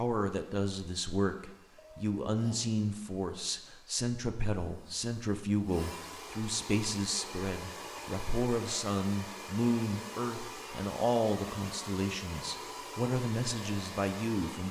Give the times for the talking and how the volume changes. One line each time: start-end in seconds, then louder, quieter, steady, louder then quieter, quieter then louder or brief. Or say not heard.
0.0-14.6 steady.